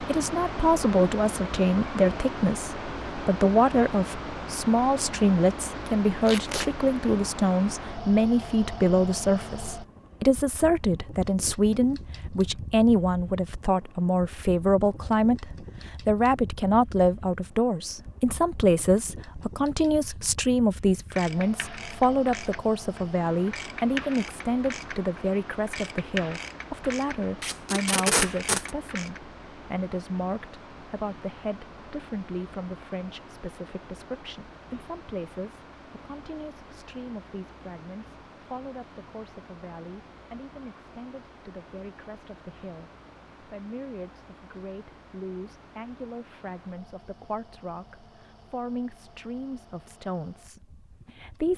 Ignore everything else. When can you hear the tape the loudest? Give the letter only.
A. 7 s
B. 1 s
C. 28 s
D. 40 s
C.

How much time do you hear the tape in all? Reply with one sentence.
You can hear the tape for 2 seconds altogether.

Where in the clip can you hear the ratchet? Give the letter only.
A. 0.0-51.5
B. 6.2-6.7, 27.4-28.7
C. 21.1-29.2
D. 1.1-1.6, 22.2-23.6
C.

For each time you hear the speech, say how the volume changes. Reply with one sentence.
The speech can be heard from 0.0 to 51.5 s, getting quieter.